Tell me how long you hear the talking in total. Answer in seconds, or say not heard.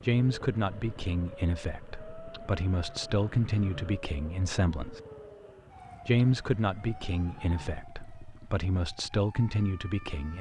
9 s.